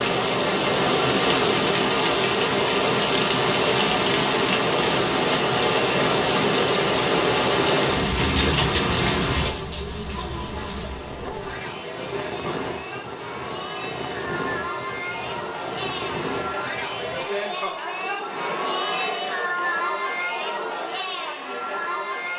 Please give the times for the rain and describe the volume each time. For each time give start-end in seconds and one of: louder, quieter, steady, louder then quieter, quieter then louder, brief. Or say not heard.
0.0-17.2 quieter.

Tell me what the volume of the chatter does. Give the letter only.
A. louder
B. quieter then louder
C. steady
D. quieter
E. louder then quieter
A.